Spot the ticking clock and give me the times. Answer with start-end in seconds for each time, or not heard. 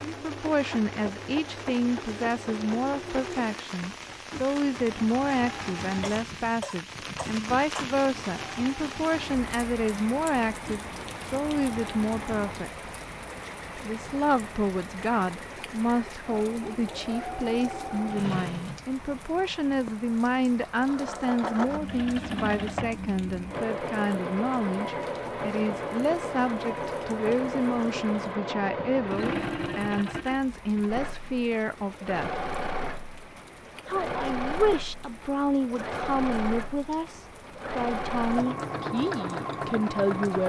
not heard.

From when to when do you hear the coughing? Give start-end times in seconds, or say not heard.
6.0-7.8.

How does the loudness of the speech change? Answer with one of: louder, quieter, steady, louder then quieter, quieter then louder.
steady.